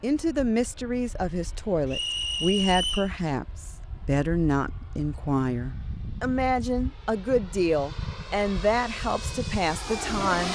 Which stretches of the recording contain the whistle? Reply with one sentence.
You can hear the whistle from 1.9 to 3.1 s.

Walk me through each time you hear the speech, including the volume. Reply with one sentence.
You can hear the speech from 0.0 to 10.5 s, at a steady volume.